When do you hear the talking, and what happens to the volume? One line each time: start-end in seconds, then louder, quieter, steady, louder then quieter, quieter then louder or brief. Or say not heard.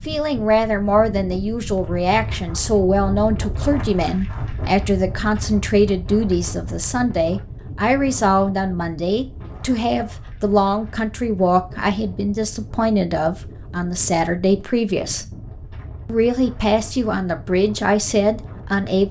0.1-15.2 steady
16.1-19.0 brief.